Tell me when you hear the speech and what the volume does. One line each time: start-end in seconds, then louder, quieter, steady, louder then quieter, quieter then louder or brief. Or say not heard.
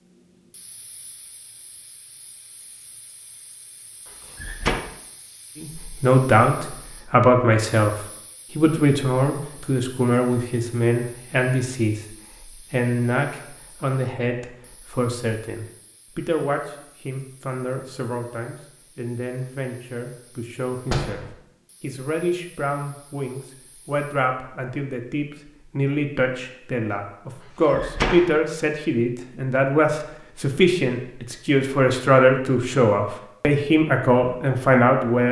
5.6-35.2 quieter then louder.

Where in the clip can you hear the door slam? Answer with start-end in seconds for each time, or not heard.
4.3-4.8, 20.9-21.3, 27.7-28.4.